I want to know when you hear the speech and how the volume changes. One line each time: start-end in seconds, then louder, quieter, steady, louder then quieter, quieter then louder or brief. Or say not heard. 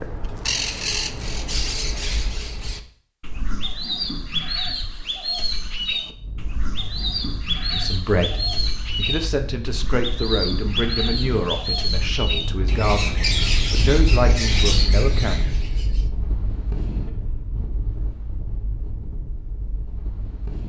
7.7-15.4 steady.